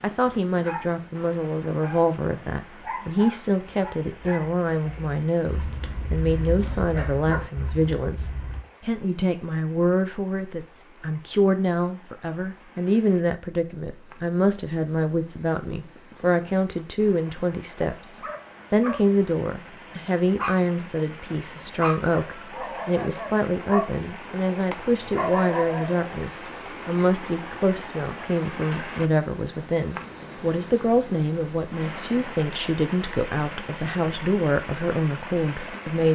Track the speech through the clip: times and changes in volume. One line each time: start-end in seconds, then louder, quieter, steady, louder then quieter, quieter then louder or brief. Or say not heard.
0.0-36.1 steady.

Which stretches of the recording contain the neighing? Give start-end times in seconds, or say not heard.
not heard.